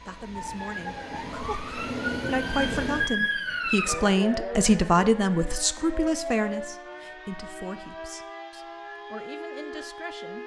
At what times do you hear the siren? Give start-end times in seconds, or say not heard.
0.0-10.4.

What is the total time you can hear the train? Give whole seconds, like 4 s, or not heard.
3 s.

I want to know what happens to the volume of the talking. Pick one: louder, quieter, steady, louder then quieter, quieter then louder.
louder then quieter.